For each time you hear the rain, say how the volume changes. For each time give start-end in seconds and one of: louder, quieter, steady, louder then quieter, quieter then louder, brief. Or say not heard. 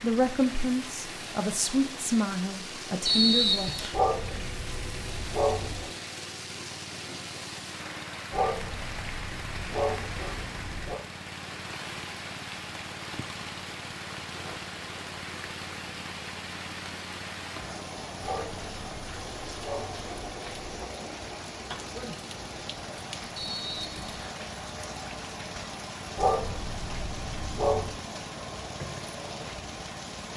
0.0-30.3 steady.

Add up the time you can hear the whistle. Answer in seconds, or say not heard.
2 s.